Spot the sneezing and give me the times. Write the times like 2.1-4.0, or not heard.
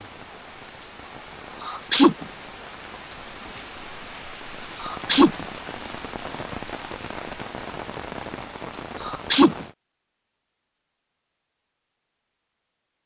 1.6-2.2, 4.8-5.5, 9.0-9.7.